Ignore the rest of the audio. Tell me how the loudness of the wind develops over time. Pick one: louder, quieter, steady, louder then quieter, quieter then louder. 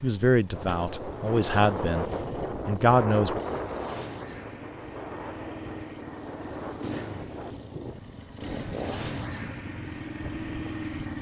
quieter.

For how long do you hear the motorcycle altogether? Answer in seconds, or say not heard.
11 s.